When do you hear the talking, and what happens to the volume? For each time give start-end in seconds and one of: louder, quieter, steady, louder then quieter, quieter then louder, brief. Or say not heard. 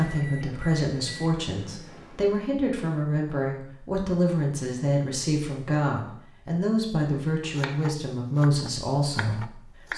0.0-9.9 steady.